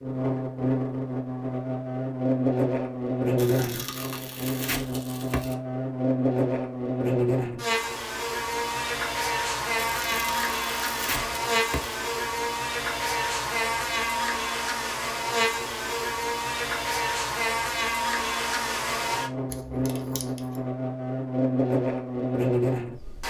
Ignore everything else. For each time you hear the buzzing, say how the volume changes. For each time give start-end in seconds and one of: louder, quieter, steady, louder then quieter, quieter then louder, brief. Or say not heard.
0.0-23.2 steady.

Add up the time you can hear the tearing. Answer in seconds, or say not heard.
5 s.